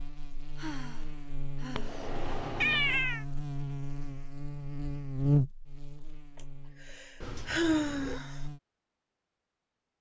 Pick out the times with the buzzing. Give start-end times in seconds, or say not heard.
0.0-8.6.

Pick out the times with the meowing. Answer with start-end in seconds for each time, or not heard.
1.8-3.2, 7.2-8.2.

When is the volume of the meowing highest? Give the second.
3 s.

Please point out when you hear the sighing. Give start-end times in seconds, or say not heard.
0.6-3.0, 6.3-8.4.